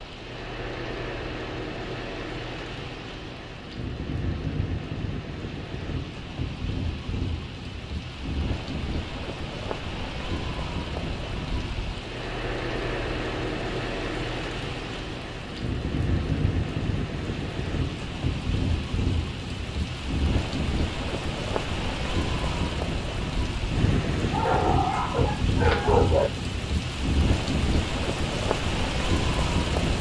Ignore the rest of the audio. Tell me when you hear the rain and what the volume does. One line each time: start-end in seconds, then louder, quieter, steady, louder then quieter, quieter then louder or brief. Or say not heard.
0.0-29.9 louder.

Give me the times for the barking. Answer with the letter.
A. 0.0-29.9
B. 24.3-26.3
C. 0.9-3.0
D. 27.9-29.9
B.